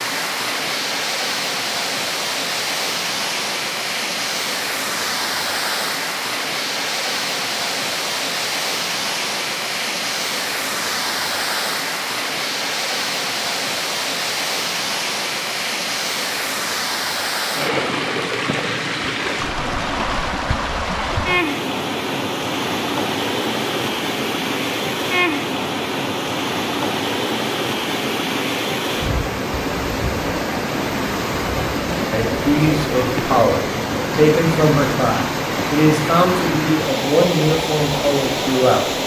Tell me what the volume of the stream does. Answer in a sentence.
The loudness of the stream stays about the same.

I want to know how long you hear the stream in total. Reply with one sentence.
The stream can be heard for 39 seconds in total.